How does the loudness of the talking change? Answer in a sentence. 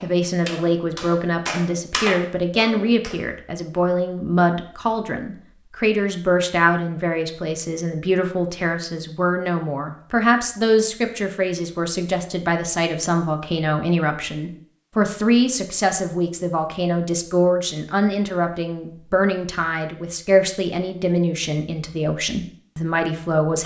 The volume of the talking stays about the same.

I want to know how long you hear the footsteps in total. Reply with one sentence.
The footsteps can't be heard in this clip.